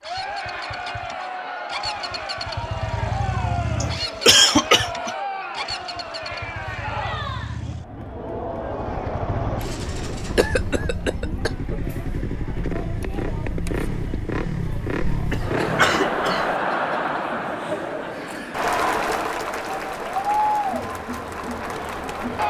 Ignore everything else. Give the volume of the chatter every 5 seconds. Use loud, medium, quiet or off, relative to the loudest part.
medium, medium, medium, loud, loud.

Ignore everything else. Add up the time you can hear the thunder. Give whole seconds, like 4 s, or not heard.
2 s.